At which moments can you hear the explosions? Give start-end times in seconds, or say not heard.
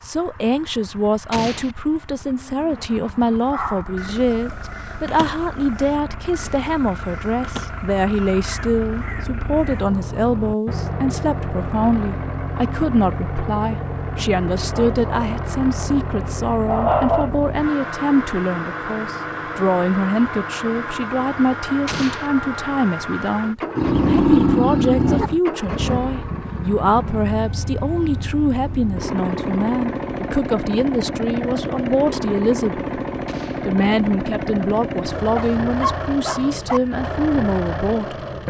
1.3-1.8, 21.9-22.3, 33.2-33.7.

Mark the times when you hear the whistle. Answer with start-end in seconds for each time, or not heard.
not heard.